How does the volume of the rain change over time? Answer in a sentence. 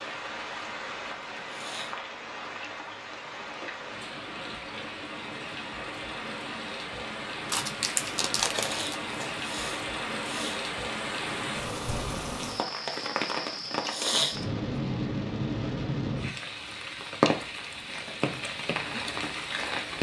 The volume of the rain goes up.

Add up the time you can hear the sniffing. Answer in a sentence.
You can hear the sniffing for 3 seconds altogether.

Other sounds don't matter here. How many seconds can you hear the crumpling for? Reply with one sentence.
The crumpling can be heard for 2 seconds in total.